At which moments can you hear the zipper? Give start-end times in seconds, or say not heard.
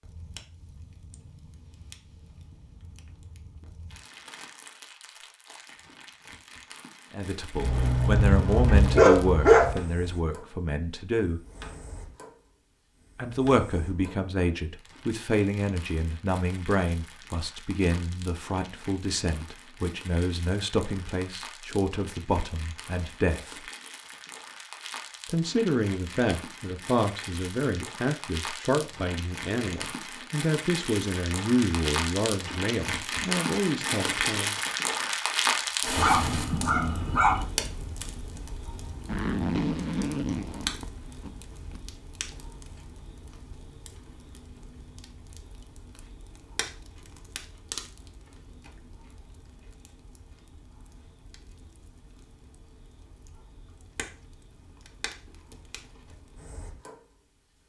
39.0-41.8.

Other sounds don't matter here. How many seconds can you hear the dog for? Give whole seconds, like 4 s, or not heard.
4 s.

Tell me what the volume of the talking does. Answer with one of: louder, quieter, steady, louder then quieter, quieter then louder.
steady.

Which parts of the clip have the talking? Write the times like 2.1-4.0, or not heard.
7.1-11.4, 13.2-23.6, 25.2-34.5.